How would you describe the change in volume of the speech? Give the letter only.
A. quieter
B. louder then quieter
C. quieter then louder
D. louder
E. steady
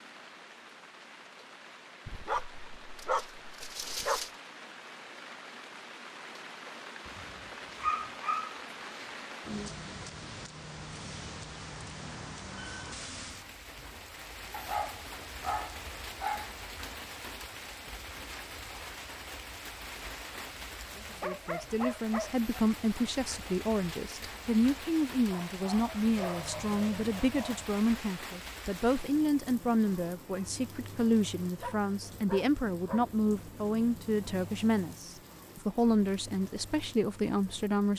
E.